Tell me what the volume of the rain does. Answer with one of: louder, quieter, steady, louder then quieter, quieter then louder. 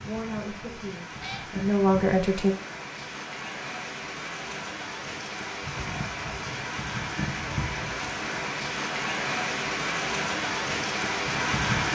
louder.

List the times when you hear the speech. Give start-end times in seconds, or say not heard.
0.0-2.5.